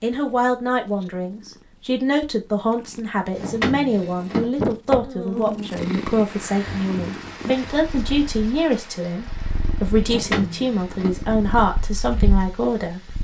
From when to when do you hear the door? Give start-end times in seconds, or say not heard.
3.4-4.5, 10.1-11.1.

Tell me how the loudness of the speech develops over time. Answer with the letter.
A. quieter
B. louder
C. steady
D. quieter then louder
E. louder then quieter
C.